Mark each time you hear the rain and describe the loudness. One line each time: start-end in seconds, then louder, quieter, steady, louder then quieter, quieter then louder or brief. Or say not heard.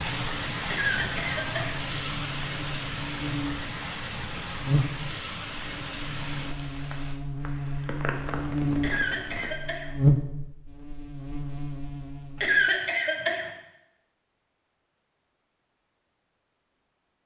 0.0-9.6 quieter.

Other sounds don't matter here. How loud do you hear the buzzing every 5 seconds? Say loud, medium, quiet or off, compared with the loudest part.
medium, medium, loud, off.